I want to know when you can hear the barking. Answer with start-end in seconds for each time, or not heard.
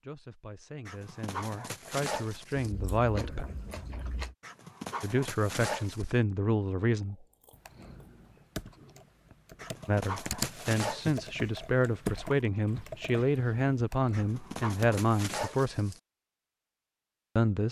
0.8-2.7, 4.4-6.1, 9.6-11.3, 14.1-16.0.